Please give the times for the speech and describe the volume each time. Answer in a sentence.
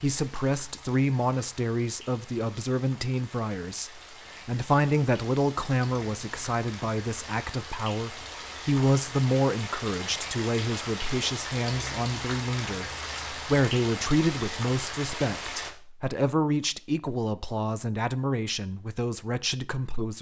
You can hear the speech from 0.0 to 20.1 s, at a steady volume.